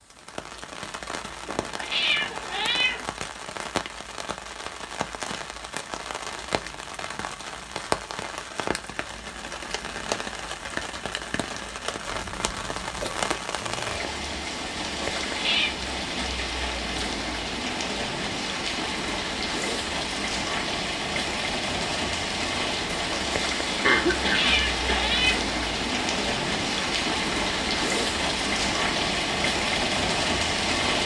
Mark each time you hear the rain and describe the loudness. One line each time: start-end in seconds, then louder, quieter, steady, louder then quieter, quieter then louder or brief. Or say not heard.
0.0-31.0 louder.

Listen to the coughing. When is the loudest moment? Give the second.
24 s.